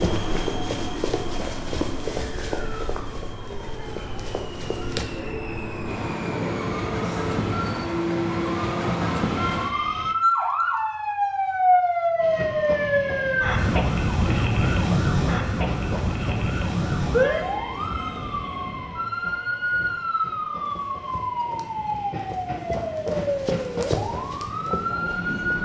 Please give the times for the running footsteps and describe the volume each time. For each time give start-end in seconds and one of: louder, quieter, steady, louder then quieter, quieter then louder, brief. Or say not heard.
0.0-5.0 quieter
20.6-25.5 louder then quieter.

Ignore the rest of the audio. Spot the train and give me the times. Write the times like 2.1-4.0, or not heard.
0.0-10.2, 12.2-25.5.